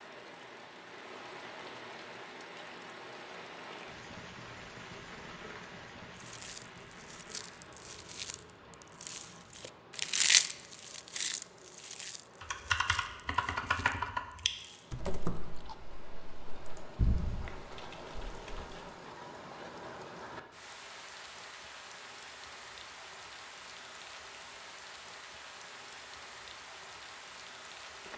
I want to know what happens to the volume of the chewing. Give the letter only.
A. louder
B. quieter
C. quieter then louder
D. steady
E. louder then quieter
E.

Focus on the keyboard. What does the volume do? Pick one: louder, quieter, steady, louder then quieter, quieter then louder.
quieter.